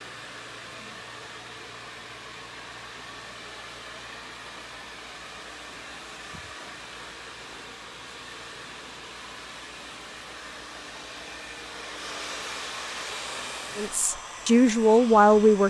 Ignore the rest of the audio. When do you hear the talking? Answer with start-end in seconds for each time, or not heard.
13.8-15.6.